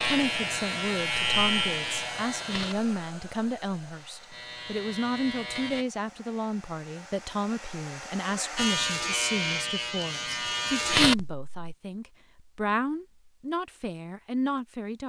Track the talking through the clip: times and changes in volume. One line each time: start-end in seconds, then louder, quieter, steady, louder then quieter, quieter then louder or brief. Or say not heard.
0.0-15.0 steady.